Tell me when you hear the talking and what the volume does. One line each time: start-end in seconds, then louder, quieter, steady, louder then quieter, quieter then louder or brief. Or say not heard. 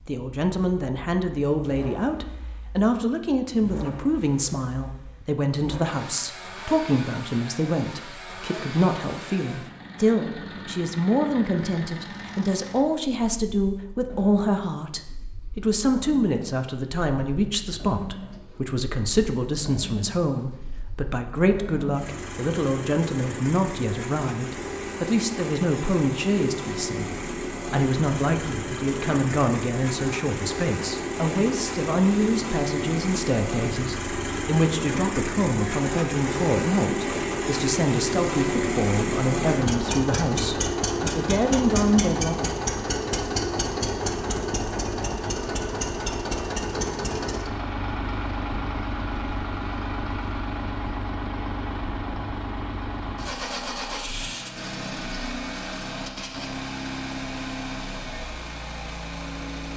0.1-42.4 steady.